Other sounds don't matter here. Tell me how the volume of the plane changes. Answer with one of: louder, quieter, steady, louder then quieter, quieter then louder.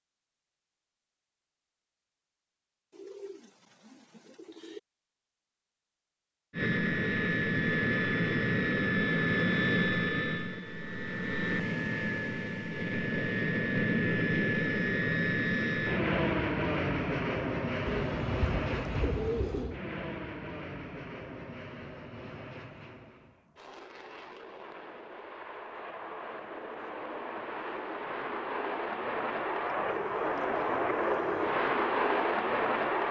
quieter then louder.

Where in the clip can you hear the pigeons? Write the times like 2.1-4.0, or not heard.
2.9-4.8, 17.9-19.8.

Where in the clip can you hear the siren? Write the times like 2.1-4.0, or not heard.
not heard.